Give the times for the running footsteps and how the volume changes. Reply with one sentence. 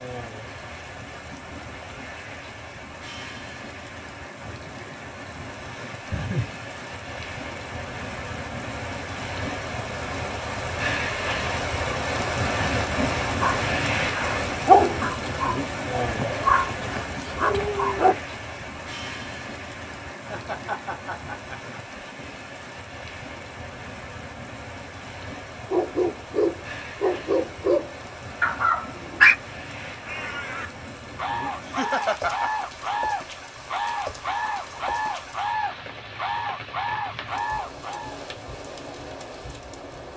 You can't hear the running footsteps here.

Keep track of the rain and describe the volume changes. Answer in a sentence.
The volume of the rain goes up, then down.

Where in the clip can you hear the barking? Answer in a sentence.
You can hear the barking from 12.9 to 18.1 s and from 25.7 to 29.4 s.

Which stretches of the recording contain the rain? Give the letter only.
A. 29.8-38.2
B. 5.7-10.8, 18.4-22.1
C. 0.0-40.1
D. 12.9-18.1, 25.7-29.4
C.